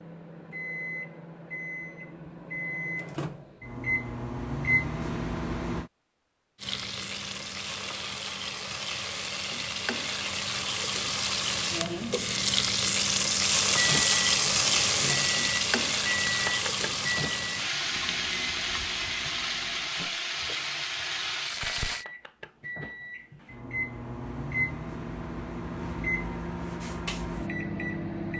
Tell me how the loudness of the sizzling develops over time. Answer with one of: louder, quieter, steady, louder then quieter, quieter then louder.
louder then quieter.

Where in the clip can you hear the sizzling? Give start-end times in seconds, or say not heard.
6.5-22.1.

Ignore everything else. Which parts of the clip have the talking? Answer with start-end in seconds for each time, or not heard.
not heard.